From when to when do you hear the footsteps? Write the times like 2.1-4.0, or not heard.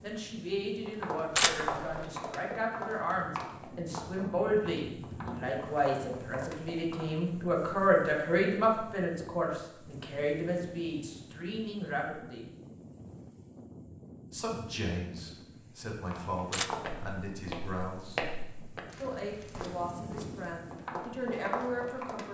0.8-7.1, 16.1-22.2.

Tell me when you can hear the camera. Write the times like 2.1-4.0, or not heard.
1.4-2.0, 16.5-17.1.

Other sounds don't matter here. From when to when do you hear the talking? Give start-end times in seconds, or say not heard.
0.0-12.4, 14.3-18.2, 19.0-22.2.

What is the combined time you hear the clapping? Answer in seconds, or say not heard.
not heard.